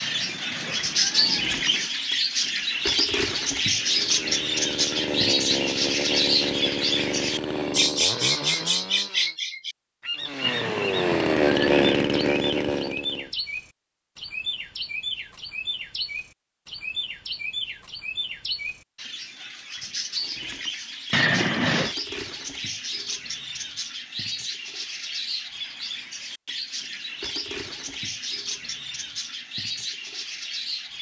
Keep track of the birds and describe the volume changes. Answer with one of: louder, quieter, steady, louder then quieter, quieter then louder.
quieter.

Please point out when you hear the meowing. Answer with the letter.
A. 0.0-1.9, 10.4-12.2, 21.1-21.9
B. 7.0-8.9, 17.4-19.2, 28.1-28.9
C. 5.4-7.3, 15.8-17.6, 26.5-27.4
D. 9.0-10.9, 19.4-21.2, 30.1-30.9
A.